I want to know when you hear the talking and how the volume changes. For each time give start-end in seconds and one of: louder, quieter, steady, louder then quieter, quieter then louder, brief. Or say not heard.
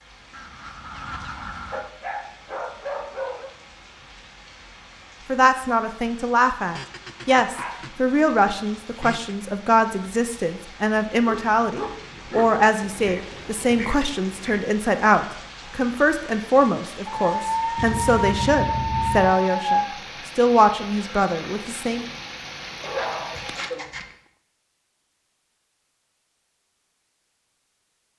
5.2-22.1 steady.